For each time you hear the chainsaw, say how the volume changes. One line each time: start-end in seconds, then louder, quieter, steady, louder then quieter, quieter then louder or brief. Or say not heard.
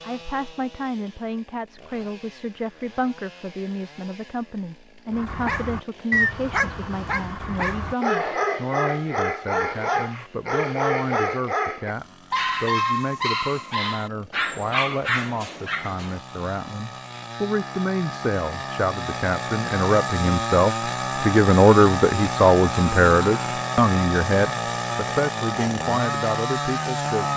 0.0-27.3 louder.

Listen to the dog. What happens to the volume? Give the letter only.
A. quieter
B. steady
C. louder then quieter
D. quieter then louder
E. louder
B.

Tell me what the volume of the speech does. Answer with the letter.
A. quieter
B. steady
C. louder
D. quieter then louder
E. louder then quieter
C.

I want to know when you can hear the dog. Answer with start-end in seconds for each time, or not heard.
5.1-16.2.